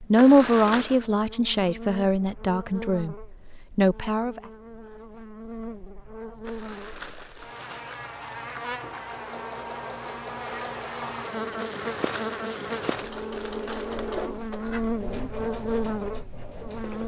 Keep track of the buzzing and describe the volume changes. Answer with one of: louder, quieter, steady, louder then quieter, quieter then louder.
louder.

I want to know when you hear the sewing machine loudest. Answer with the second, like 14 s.
14 s.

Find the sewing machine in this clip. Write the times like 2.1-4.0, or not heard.
9.1-17.0.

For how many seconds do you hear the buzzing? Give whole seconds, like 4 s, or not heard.
17 s.